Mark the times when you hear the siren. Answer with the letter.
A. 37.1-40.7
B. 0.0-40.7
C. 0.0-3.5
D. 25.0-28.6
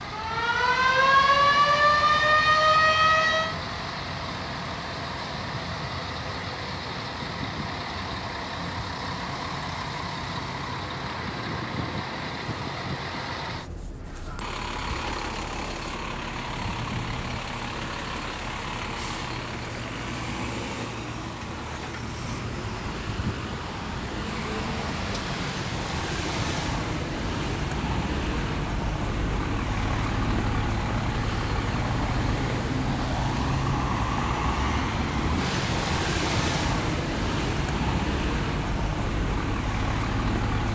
C.